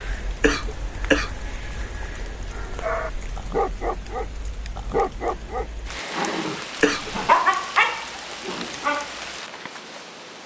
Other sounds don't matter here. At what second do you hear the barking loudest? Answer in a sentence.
The loudest moment of the barking is at 7 seconds.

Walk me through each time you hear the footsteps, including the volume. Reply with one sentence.
You can't hear the footsteps here.